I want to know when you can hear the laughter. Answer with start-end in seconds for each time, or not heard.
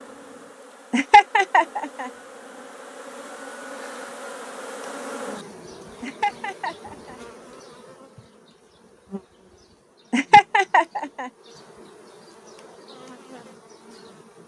0.9-2.1, 6.0-7.2, 10.1-11.3.